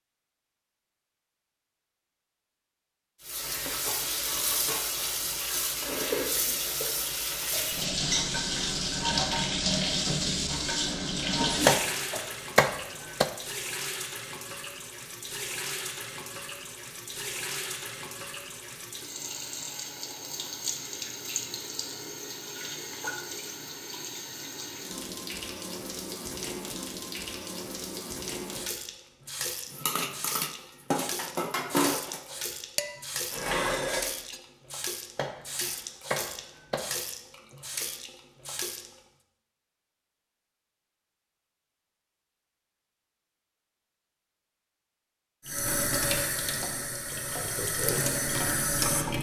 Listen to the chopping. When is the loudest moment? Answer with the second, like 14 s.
12 s.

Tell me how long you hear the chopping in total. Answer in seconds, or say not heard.
3 s.